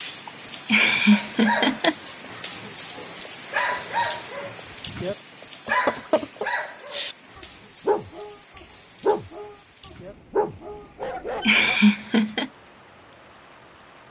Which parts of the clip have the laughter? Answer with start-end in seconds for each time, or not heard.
0.2-1.9, 5.7-6.5, 11.0-12.5.